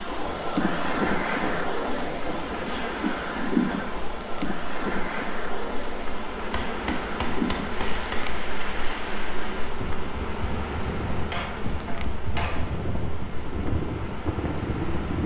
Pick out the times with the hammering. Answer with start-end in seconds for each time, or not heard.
0.1-2.8, 6.5-8.4, 11.3-12.8.